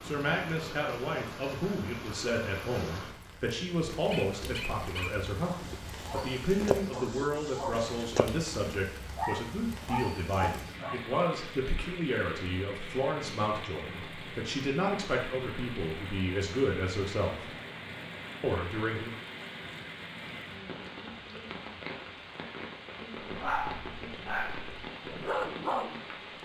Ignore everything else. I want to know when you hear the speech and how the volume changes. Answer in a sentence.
You can hear the speech from 0.0 to 17.6 s, at a steady volume; and briefly from 18.4 to 19.1 s.